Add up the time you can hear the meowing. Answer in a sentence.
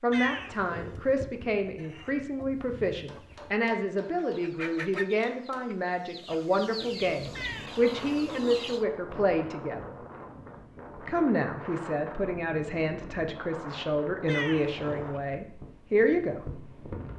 You can hear the meowing for 3 seconds altogether.